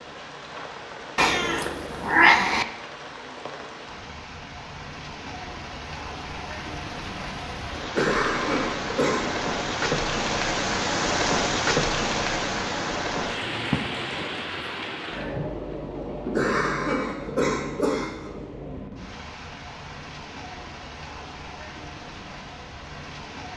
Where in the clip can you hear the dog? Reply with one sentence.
The dog can't be heard in this clip.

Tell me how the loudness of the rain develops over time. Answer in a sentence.
The loudness of the rain goes up, then down.